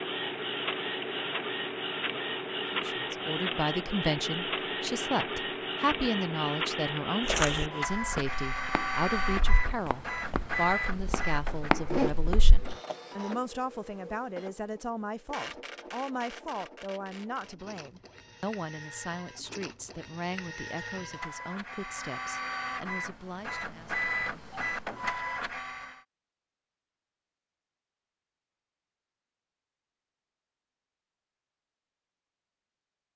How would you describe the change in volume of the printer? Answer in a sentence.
The loudness of the printer goes down, then up.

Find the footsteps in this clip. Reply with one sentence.
The footsteps can be heard from 7.2 to 12.8 s.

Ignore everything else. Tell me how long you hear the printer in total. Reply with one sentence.
You can hear the printer for 26 seconds altogether.